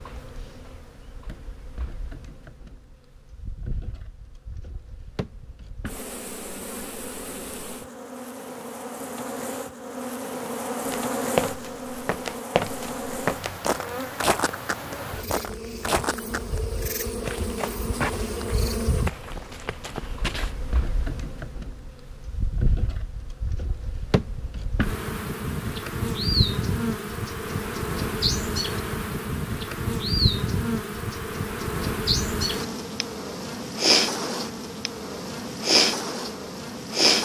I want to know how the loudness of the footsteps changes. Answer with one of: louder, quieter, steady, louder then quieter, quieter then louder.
quieter.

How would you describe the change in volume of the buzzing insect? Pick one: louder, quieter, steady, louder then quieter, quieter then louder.
louder.